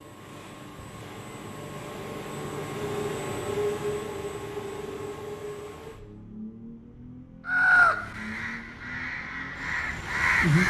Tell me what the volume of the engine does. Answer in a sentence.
The volume of the engine goes up, then down.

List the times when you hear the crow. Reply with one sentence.
The crow can be heard from 7.5 to 10.6 s.